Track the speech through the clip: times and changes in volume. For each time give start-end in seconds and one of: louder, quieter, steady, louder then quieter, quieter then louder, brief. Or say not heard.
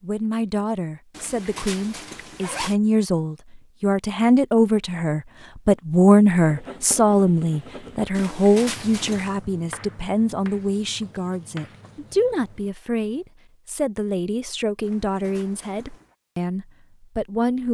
0.0-17.6 louder then quieter.